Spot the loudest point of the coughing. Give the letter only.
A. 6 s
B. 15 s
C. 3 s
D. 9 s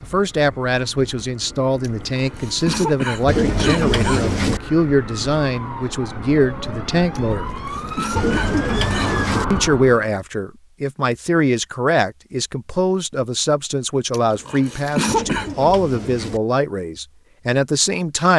B.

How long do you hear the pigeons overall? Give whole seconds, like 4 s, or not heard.
4 s.